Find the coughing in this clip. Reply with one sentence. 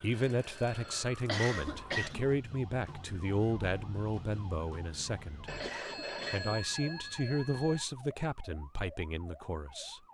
You can hear the coughing from 1.2 to 2.3 s and from 5.6 to 6.5 s.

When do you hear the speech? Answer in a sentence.
You can hear the speech from 0.0 to 5.5 s and from 6.3 to 10.0 s.